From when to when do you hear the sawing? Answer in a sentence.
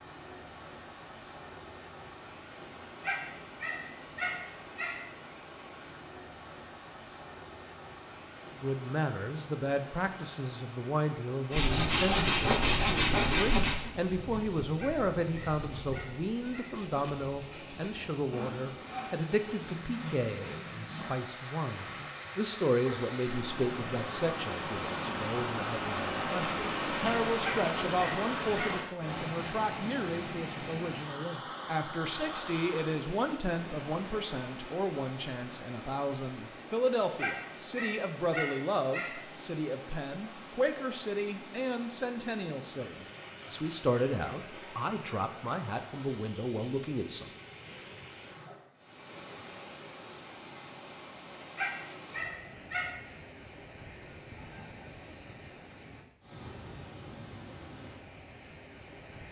The sawing can be heard from 11.5 to 21.1 s.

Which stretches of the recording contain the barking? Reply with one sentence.
The barking can be heard from 3.0 to 5.0 s, from 14.8 to 16.7 s, from 27.4 to 28.8 s, from 37.1 to 39.1 s and from 51.5 to 52.9 s.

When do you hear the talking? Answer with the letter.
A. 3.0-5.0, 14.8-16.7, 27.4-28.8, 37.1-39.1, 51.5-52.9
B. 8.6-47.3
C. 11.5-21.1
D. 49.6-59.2
B.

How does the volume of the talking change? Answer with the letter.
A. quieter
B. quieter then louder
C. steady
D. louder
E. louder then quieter
C.